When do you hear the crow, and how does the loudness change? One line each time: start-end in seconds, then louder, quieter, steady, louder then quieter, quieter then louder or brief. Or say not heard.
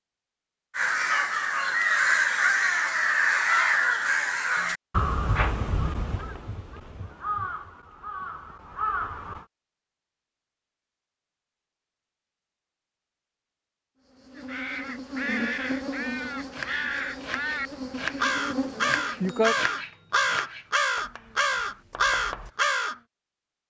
0.8-9.4 quieter
14.3-23.0 louder.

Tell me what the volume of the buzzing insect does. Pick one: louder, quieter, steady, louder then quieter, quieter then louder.
quieter then louder.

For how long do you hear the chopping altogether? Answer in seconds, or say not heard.
6 s.